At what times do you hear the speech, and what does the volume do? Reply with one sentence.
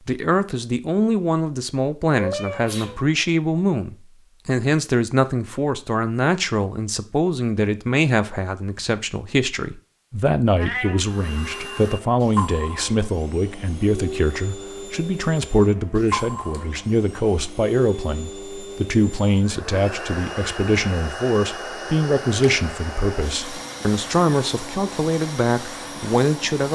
You can hear the speech from 0.1 to 26.7 s, at a steady volume.